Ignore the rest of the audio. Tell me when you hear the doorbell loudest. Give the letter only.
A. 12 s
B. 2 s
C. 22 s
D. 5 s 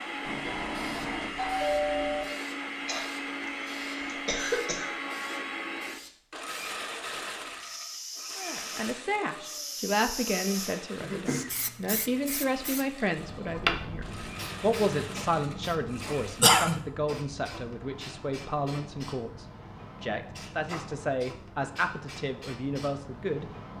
B.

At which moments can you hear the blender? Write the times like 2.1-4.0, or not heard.
0.0-16.6.